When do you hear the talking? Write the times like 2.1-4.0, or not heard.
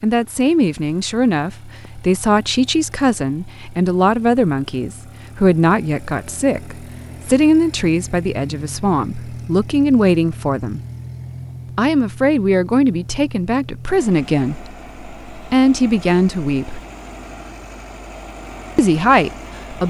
0.0-10.8, 11.8-16.8, 18.8-19.8.